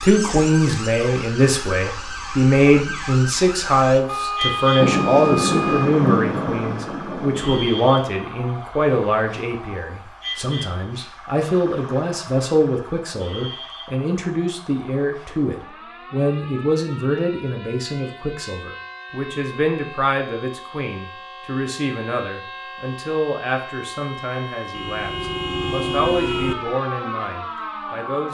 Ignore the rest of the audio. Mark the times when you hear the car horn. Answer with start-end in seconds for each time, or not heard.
4.0-6.0, 24.7-26.6.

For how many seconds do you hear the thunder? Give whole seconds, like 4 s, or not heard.
3 s.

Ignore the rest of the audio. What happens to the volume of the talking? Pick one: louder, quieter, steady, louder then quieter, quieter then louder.
quieter.